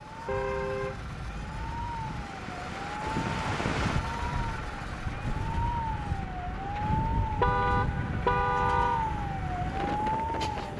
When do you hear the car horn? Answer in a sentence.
You can hear the car horn from 0.2 to 2.3 s and from 7.4 to 9.1 s.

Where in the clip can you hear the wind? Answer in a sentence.
The wind can be heard from 2.0 to 10.7 s.